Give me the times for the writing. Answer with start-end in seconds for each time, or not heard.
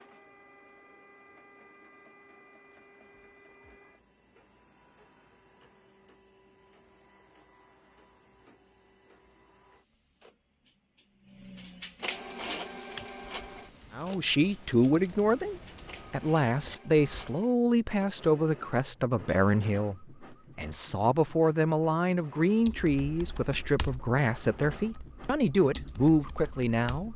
not heard.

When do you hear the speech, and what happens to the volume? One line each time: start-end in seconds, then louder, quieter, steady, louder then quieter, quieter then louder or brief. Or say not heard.
13.9-27.1 steady.